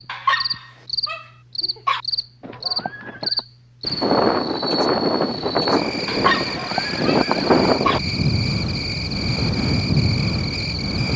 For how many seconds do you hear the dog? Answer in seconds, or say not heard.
4 s.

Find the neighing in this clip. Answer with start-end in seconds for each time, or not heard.
2.4-3.5, 6.3-7.9.